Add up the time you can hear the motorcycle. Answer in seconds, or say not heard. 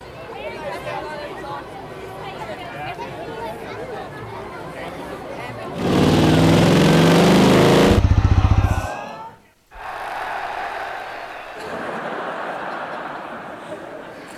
3 s.